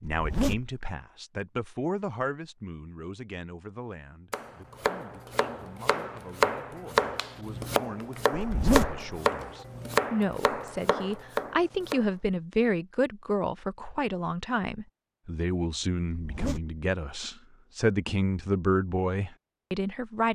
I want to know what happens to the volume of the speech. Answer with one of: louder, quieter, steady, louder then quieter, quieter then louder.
quieter then louder.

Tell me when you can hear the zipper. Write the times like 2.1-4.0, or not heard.
0.1-0.8, 8.3-9.1, 16.1-16.8.